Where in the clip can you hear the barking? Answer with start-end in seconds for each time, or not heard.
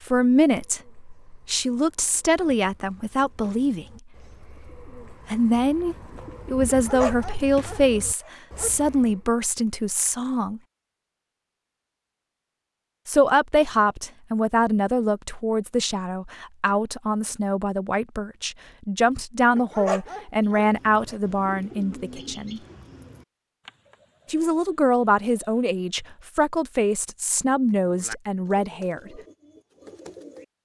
6.7-8.7, 19.6-21.1.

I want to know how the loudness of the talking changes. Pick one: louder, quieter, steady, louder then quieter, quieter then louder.
steady.